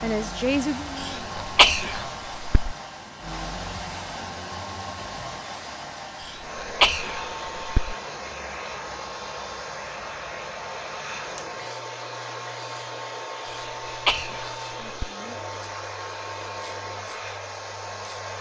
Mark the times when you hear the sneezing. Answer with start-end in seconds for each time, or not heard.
1.0-2.8, 6.2-8.0, 13.4-15.1.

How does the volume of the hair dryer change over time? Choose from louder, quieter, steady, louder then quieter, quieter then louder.
steady.